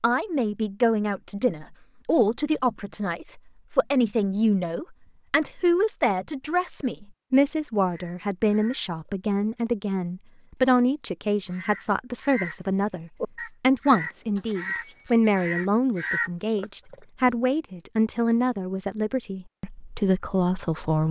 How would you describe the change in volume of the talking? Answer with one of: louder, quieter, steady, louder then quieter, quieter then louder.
steady.